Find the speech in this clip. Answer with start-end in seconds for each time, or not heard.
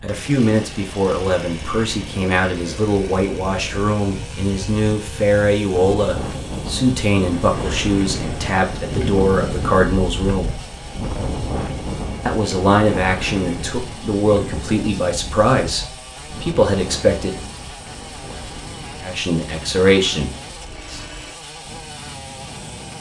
0.0-10.6, 12.2-17.4, 19.0-21.0.